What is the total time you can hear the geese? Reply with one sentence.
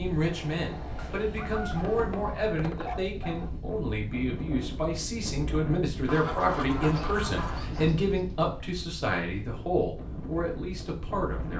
The geese can be heard for 4 seconds in total.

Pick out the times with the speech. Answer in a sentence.
The speech can be heard from 0.0 to 11.5 s.